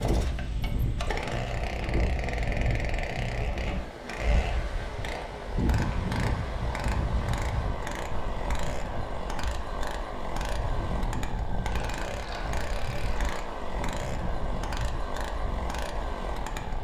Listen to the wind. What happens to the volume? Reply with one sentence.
The loudness of the wind goes down.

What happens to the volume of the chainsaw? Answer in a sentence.
The volume of the chainsaw stays about the same.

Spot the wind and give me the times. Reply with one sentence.
The wind can be heard from 0.0 to 16.8 s.